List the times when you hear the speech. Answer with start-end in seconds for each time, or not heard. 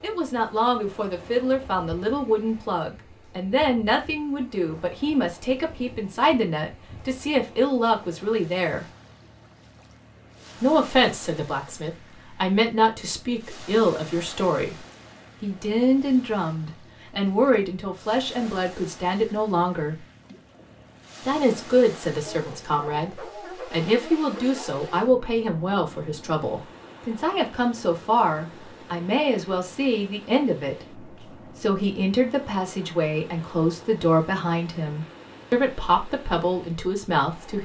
0.0-8.8, 10.6-14.8, 15.4-20.1, 21.2-37.6.